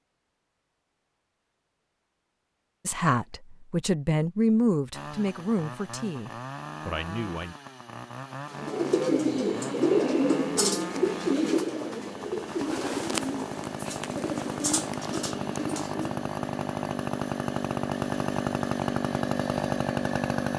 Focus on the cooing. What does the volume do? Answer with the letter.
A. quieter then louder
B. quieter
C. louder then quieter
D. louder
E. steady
B.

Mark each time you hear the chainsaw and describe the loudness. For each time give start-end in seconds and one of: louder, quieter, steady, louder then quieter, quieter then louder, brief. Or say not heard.
4.9-20.5 louder.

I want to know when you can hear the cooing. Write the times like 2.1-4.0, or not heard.
8.6-16.2.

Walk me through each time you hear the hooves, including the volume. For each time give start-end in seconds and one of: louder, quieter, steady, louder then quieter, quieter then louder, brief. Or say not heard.
not heard.